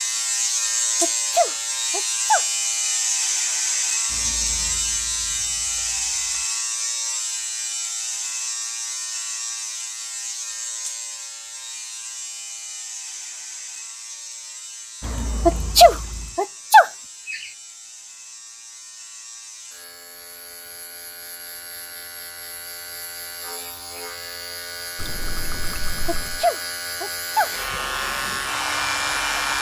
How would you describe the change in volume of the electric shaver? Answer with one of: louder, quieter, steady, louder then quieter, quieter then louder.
quieter then louder.